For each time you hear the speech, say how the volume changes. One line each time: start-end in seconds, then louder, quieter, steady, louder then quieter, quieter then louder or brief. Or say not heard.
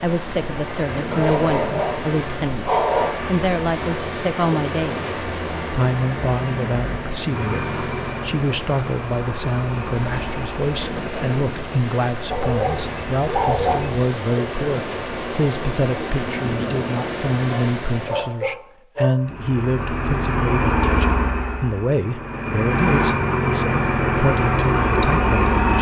0.0-25.7 steady.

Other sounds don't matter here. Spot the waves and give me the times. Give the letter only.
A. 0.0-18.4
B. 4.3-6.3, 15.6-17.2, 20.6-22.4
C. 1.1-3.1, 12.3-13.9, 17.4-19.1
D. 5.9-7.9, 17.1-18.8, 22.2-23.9
A.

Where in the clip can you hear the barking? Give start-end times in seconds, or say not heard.
1.1-3.1, 12.3-13.9, 17.4-19.1.